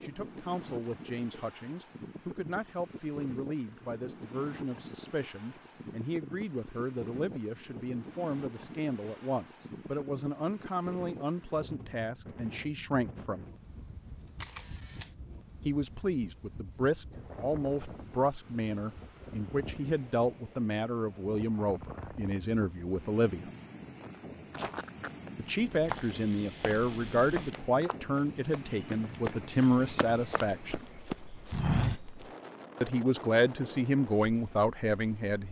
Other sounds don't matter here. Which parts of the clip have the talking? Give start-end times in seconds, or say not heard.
0.0-13.4, 15.7-23.5, 25.4-30.9, 32.8-35.4.